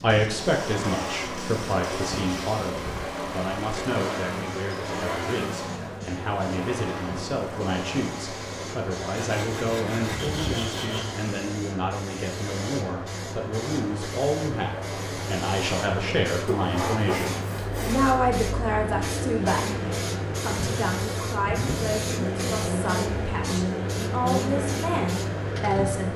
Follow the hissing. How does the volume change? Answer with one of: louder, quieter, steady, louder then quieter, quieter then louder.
louder.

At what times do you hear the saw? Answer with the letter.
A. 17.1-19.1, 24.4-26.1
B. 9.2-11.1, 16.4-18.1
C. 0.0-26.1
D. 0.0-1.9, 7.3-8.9
B.